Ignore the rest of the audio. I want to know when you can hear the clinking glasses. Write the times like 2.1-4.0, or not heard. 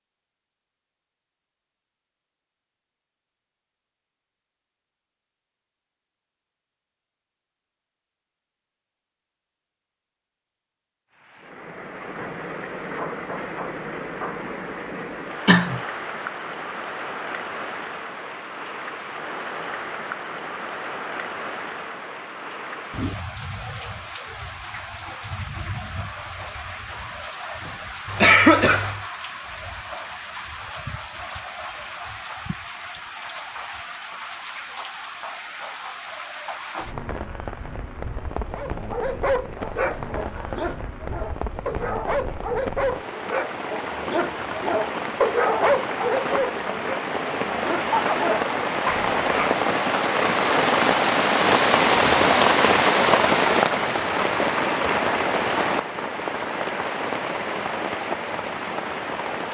not heard.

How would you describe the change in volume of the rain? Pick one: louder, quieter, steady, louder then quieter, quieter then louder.
louder.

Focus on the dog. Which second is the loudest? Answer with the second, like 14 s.
46 s.